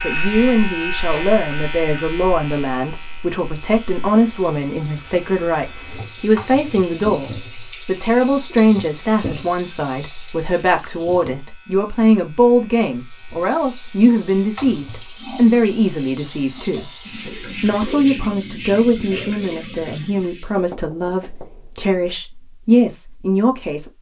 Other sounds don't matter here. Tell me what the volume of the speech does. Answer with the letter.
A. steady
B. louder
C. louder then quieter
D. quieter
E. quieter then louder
A.